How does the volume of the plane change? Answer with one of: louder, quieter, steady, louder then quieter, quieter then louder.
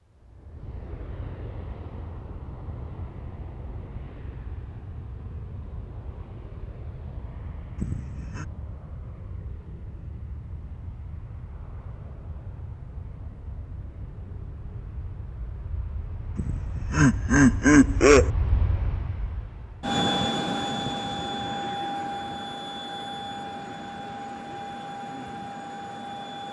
louder.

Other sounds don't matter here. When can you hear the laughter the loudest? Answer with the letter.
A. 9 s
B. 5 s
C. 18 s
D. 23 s
C.